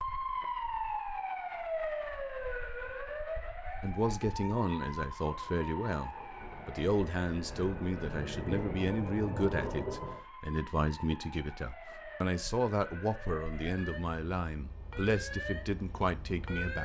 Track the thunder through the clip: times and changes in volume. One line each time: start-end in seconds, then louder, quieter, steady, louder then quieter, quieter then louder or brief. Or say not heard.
5.3-10.2 louder.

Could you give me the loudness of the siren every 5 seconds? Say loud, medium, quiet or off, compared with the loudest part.
loud, medium, medium, loud.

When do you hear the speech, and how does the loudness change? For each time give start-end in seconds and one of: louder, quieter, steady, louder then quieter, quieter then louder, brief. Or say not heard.
3.8-16.8 steady.